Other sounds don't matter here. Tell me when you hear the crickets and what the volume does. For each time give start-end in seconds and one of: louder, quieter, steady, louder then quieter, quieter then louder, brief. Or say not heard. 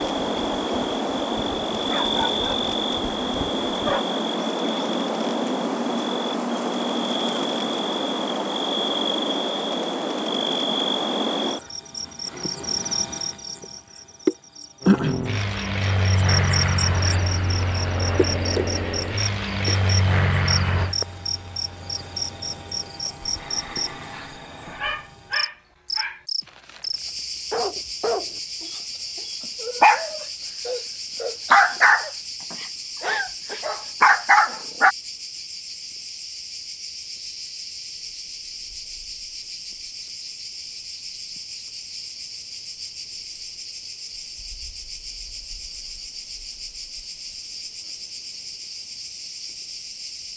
0.0-50.3 quieter.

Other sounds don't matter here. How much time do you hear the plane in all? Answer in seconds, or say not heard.
10 s.